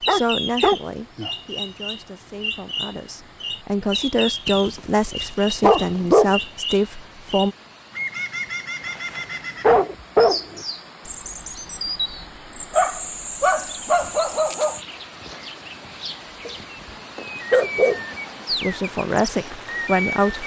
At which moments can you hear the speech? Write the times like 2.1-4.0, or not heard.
0.0-7.5, 18.5-20.4.